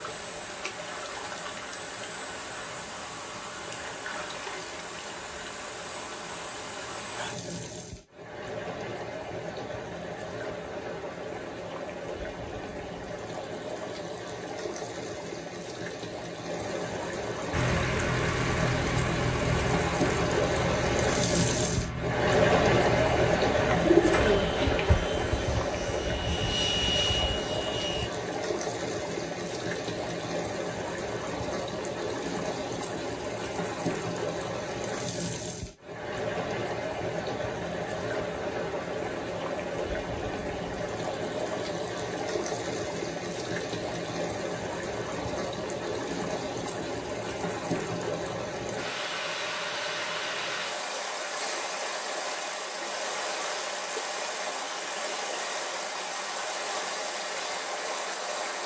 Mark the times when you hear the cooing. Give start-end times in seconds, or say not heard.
23.6-25.1.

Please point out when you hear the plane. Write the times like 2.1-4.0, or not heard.
17.5-28.1.